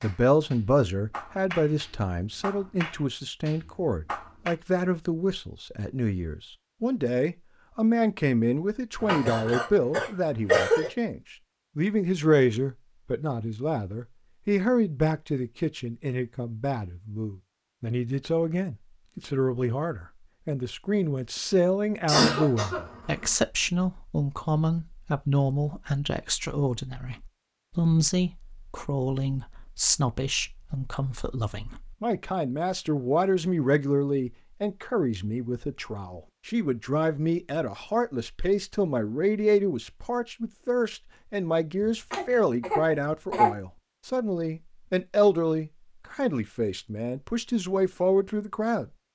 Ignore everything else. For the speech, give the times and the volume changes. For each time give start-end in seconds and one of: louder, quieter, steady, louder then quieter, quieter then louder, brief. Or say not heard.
0.0-48.9 steady.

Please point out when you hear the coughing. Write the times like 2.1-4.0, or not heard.
9.0-10.9, 22.1-23.2, 42.1-43.5.